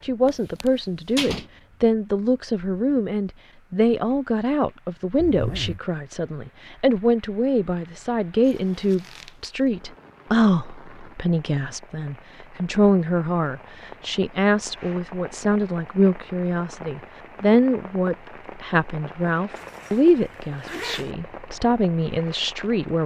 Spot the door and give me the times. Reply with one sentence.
The door can be heard from 0.2 to 1.5 s.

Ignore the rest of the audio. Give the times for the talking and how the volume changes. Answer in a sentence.
You can hear the talking from 0.0 to 23.0 s, at a steady volume.